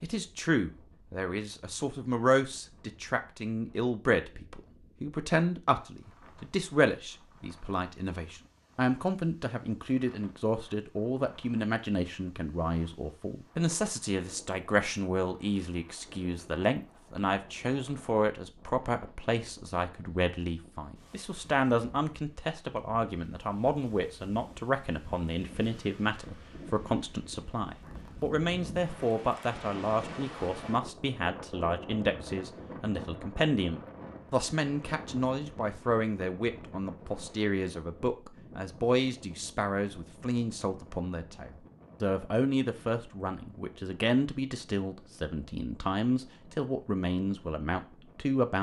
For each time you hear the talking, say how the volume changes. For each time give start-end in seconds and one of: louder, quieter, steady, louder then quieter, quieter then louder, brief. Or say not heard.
0.0-48.5 steady.